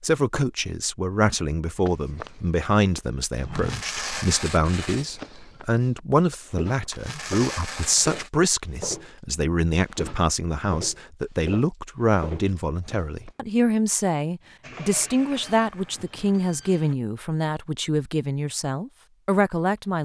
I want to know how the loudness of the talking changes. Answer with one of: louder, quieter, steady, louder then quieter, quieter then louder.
steady.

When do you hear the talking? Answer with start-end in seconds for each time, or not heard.
0.0-20.0.